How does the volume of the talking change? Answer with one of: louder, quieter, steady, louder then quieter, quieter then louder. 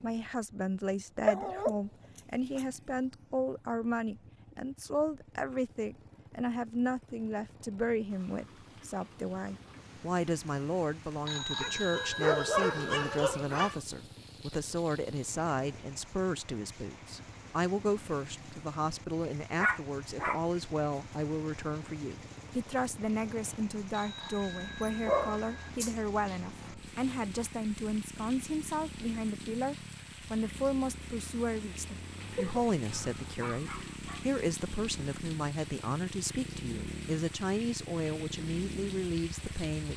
steady.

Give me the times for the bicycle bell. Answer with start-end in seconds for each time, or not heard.
11.2-12.8, 23.9-25.7.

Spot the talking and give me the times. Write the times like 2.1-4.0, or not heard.
0.0-39.9.